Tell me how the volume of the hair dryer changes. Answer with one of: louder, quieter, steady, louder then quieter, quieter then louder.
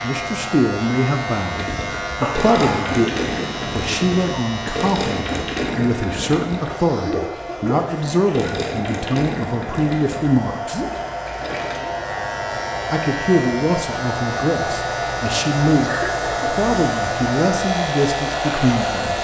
louder.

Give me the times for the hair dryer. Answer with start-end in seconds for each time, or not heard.
0.0-19.2.